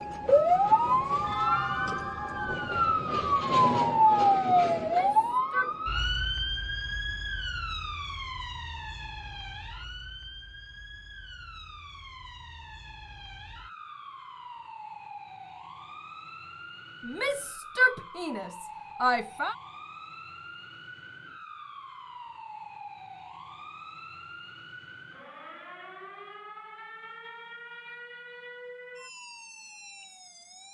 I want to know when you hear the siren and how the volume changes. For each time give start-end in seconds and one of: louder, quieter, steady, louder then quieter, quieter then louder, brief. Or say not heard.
0.0-30.7 quieter.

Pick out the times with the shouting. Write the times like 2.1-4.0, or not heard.
4.8-5.8, 17.1-19.6.